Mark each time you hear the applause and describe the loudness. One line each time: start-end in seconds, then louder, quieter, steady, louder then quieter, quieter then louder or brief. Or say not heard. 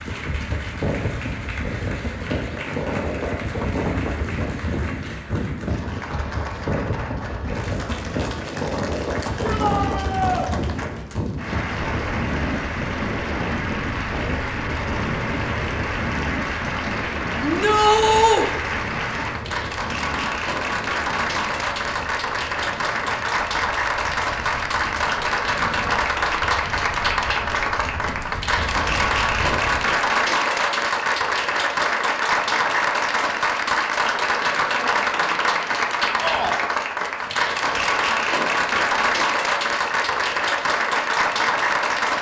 0.0-42.1 louder.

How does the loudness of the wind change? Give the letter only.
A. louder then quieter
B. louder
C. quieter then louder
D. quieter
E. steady
D.